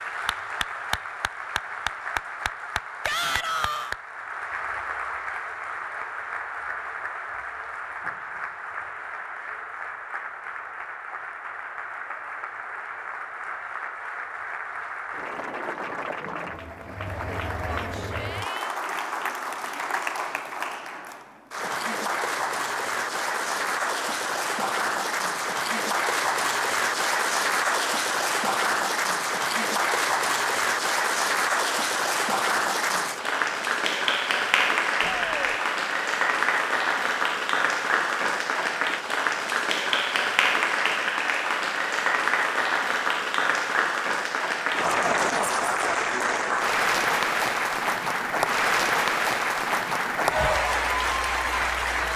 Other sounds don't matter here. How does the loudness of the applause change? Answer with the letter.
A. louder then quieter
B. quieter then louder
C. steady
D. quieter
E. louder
E.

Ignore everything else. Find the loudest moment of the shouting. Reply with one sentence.
The loudest moment of the shouting is at 3 seconds.